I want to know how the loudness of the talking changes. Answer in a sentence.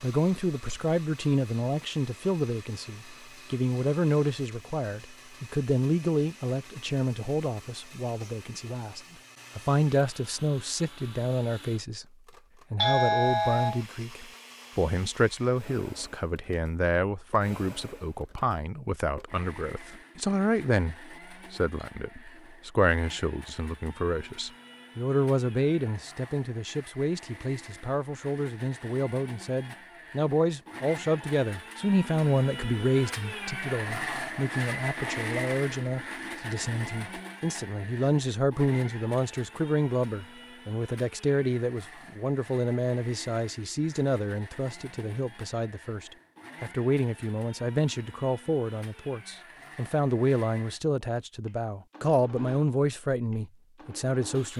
The volume of the talking stays about the same.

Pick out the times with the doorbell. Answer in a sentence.
The doorbell can be heard from 12.8 to 13.8 s.